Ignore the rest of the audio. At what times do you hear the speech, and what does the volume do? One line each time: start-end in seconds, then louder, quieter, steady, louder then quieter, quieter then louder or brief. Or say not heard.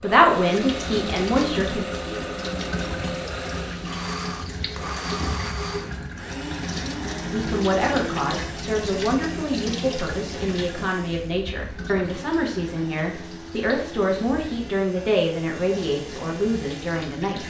0.0-1.9 brief
7.3-17.4 steady.